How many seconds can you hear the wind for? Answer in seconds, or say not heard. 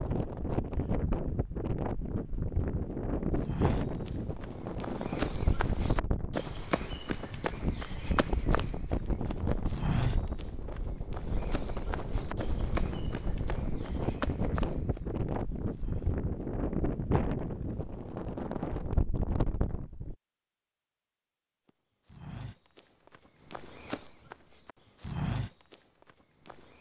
20 s.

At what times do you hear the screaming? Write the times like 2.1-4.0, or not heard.
not heard.